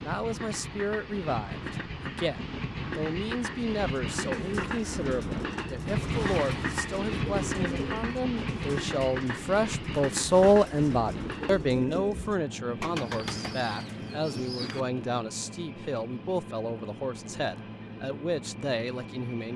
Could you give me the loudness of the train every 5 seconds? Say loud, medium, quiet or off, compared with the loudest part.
loud, loud, medium, medium.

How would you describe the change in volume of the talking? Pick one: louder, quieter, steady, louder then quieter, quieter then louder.
louder then quieter.